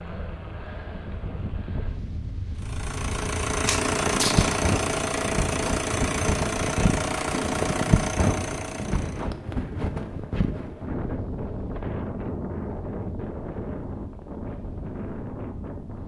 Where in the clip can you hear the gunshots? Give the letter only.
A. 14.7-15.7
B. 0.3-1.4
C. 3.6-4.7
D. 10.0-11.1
C.